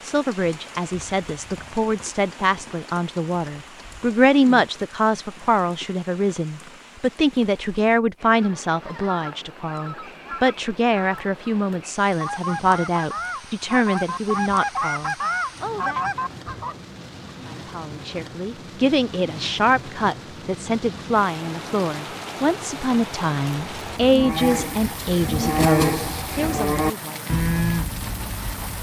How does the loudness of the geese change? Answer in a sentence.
The volume of the geese goes up.